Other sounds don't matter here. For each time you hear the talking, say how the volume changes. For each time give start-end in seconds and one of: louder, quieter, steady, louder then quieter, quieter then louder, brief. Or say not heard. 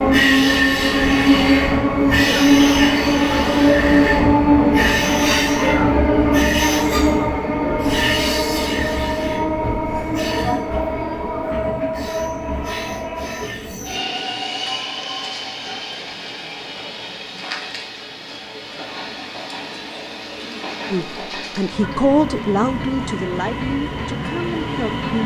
20.9-25.2 louder then quieter.